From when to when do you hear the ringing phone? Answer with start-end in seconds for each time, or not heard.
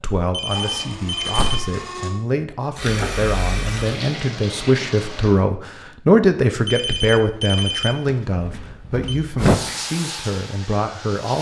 0.3-1.9, 6.7-9.2.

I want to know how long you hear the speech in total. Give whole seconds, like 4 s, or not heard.
11 s.